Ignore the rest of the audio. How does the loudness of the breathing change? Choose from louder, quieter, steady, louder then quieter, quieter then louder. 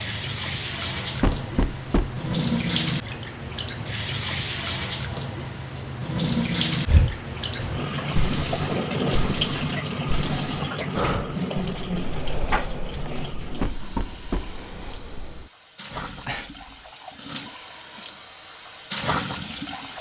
quieter.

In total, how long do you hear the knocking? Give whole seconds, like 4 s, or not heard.
2 s.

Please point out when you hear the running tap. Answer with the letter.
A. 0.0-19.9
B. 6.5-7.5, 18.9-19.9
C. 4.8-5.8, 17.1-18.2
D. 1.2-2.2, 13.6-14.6
A.